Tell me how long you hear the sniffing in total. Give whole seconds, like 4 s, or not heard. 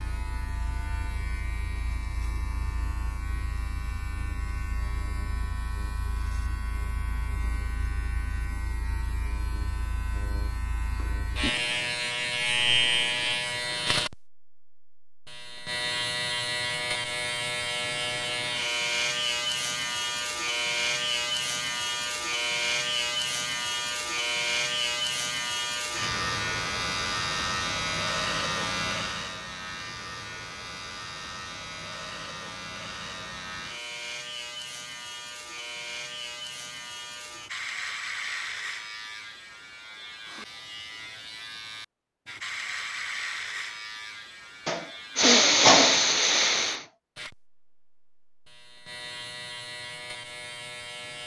2 s.